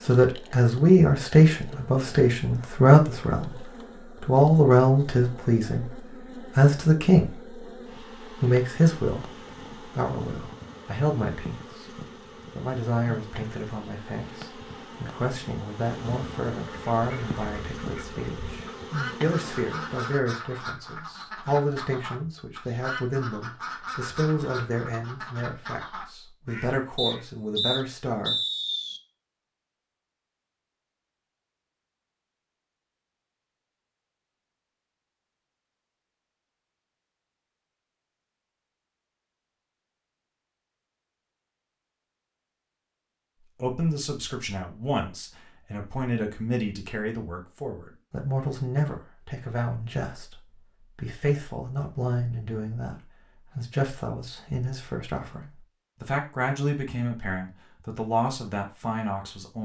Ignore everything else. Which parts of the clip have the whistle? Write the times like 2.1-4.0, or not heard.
26.9-29.0.